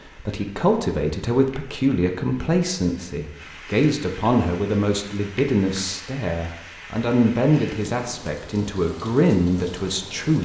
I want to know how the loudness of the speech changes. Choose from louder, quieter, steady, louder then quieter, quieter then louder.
steady.